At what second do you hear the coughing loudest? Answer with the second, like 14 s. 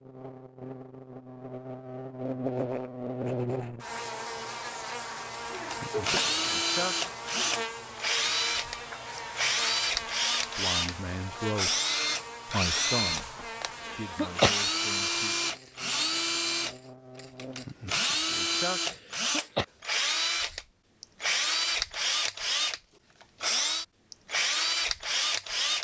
14 s.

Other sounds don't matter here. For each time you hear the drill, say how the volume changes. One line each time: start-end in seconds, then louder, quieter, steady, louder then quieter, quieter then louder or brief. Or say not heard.
5.5-25.7 steady.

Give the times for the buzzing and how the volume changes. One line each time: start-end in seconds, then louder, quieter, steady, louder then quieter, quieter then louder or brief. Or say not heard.
0.0-17.6 quieter.